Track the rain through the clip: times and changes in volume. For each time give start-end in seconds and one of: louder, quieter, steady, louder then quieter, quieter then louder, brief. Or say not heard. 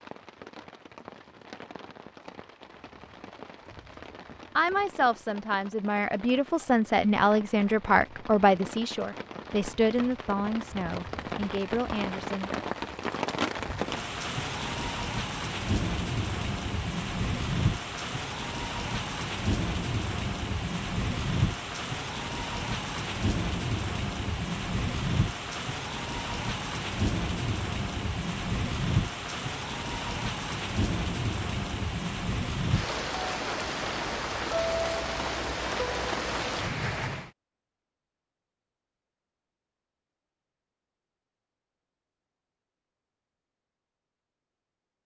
0.0-37.3 louder.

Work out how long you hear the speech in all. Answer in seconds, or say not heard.
8 s.